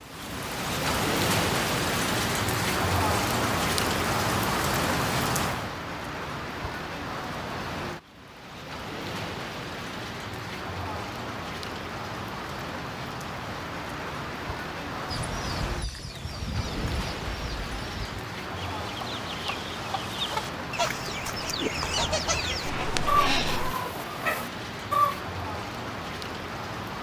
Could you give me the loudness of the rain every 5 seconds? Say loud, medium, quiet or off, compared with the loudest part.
loud, medium, medium, medium, medium, medium.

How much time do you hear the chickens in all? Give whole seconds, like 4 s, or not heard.
10 s.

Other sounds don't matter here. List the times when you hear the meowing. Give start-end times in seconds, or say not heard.
22.6-23.8.